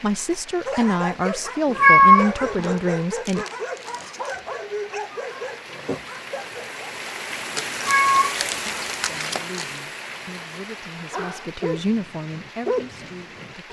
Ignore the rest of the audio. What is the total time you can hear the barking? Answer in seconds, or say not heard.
9 s.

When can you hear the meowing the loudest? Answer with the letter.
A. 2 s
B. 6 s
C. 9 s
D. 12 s
A.